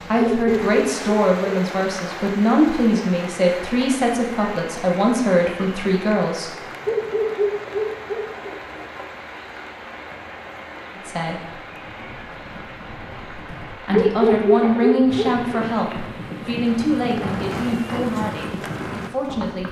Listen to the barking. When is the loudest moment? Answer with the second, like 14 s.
14 s.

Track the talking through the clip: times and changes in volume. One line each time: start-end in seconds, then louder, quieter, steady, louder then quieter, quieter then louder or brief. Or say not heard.
0.1-6.5 steady
10.9-11.6 brief
13.8-19.6 quieter.